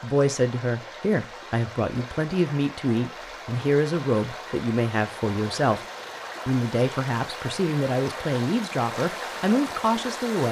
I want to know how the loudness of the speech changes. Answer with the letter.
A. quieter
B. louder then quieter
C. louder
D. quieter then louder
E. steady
E.